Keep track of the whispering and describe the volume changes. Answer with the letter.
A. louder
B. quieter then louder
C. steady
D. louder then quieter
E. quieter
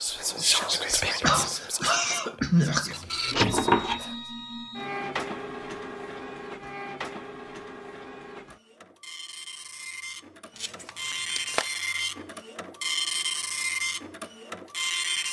E.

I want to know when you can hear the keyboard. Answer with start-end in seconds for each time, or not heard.
not heard.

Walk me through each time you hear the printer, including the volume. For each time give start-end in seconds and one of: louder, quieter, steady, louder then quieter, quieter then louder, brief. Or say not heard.
2.9-15.2 quieter then louder.